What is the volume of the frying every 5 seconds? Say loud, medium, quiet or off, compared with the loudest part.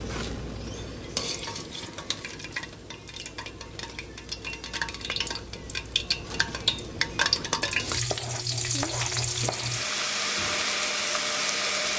medium, loud, loud.